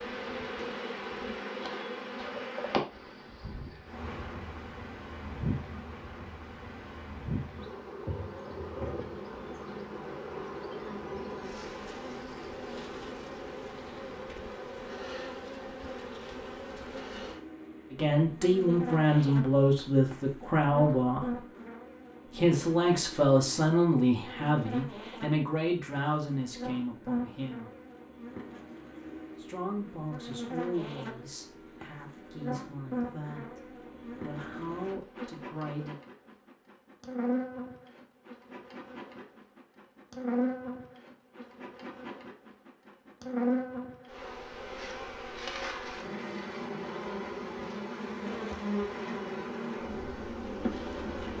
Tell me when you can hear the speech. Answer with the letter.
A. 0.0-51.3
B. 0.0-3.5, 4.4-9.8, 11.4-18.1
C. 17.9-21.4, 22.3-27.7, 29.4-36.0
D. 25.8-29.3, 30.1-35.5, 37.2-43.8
C.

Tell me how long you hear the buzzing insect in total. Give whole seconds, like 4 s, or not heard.
51 s.